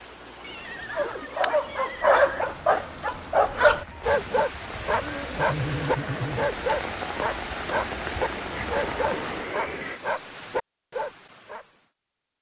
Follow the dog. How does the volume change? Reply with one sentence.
The volume of the dog goes down.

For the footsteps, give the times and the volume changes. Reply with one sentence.
The footsteps can't be heard in this clip.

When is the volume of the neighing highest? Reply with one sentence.
The volume of the neighing peaks at 6 seconds.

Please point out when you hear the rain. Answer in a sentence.
You can hear the rain from 0.0 to 9.6 s.